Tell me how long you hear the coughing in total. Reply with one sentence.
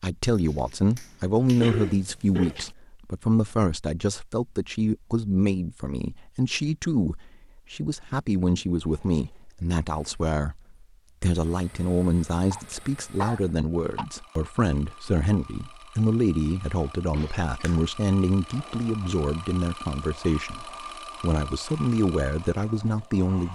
You can hear the coughing for 3 seconds altogether.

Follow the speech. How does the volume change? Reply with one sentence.
The loudness of the speech stays about the same.